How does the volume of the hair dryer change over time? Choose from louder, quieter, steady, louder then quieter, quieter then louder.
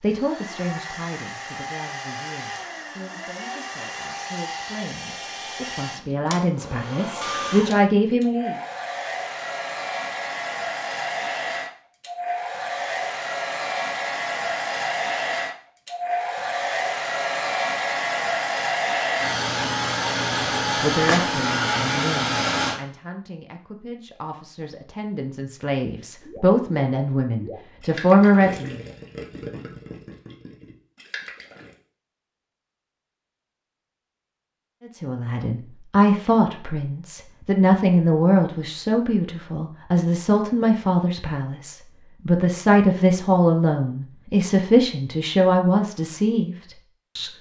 louder.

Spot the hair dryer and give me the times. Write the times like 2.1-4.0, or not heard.
0.0-22.8.